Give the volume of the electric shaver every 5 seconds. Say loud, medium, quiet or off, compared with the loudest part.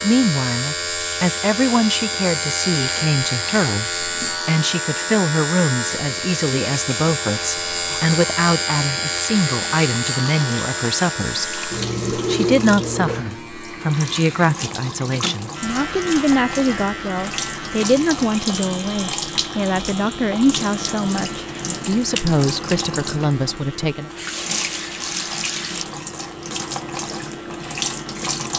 loud, loud, loud, medium, quiet, quiet.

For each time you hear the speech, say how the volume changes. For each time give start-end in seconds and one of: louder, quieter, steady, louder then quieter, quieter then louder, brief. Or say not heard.
0.0-24.1 steady.